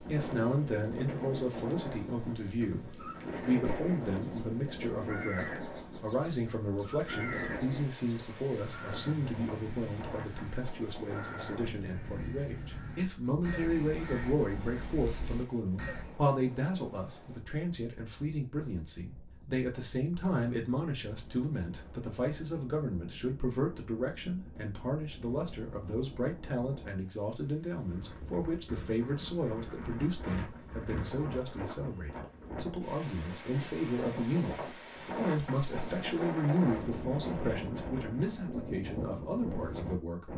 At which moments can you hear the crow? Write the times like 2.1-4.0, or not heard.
4.2-16.1.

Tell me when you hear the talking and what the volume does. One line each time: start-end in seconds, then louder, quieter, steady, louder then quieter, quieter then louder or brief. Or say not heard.
0.0-40.3 steady.